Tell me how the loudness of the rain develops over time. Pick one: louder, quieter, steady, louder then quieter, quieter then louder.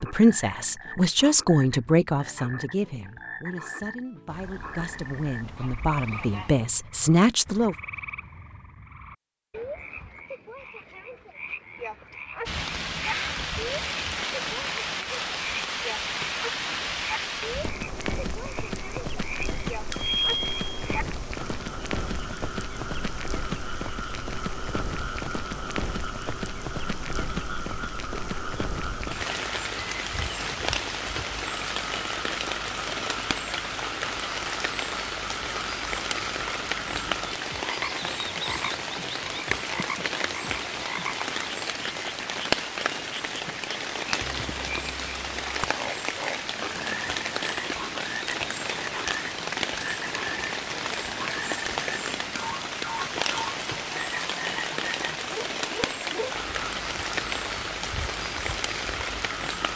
steady.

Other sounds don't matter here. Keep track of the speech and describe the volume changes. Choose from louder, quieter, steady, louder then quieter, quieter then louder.
quieter then louder.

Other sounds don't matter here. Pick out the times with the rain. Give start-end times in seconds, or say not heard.
12.4-59.7.